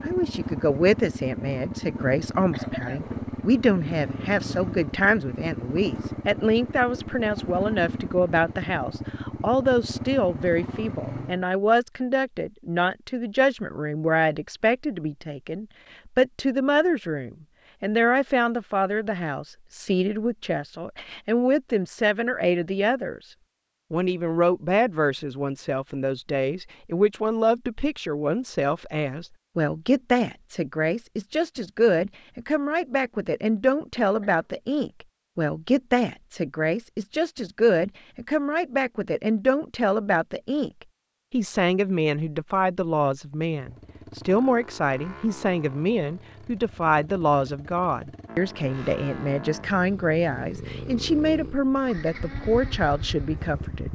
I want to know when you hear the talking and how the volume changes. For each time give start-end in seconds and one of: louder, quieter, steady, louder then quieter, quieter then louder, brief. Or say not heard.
0.0-23.2 steady
23.9-40.7 steady
41.3-53.9 steady.